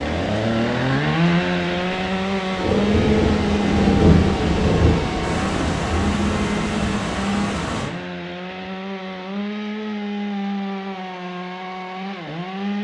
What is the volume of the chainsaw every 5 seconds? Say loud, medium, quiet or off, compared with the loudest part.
loud, medium, medium.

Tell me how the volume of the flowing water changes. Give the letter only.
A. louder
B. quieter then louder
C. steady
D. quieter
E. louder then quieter
A.